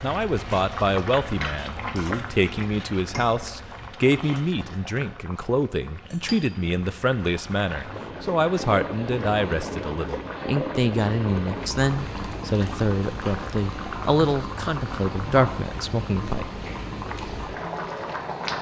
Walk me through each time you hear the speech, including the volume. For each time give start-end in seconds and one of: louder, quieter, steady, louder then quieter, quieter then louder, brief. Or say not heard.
0.0-16.5 steady.